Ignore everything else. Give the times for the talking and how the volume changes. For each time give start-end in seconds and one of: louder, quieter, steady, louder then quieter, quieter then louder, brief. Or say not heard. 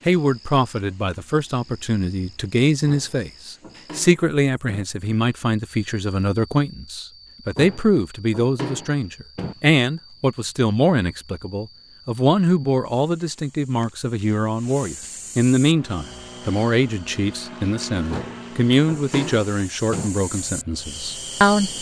0.1-21.7 steady.